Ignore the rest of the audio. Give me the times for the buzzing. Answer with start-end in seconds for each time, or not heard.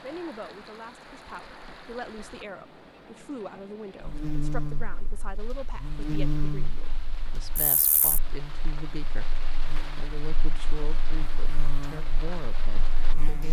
4.0-13.4.